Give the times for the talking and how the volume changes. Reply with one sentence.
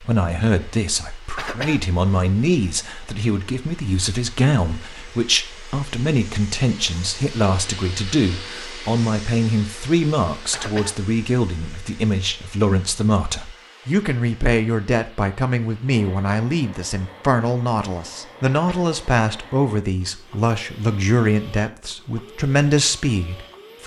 The talking can be heard from 0.0 to 23.8 s, at a steady volume.